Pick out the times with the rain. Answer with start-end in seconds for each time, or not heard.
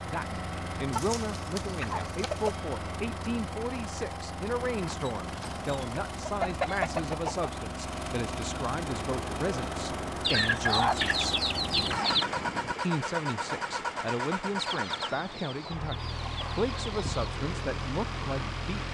8.8-18.8.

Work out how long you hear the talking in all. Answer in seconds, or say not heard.
17 s.